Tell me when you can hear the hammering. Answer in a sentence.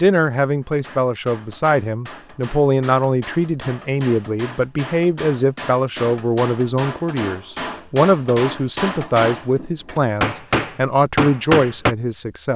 The hammering can be heard from 0.6 to 11.9 s.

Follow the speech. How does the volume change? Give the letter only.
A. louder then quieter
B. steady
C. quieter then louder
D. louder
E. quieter
B.